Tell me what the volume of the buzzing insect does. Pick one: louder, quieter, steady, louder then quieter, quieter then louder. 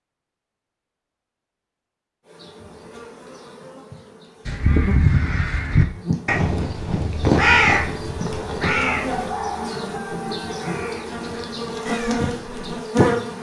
louder.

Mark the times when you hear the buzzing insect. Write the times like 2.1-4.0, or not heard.
2.2-13.3.